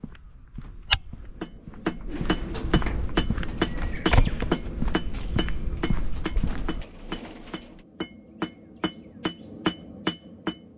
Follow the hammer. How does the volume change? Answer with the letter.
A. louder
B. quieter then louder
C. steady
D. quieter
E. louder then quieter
B.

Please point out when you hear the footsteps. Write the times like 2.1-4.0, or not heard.
0.0-6.8.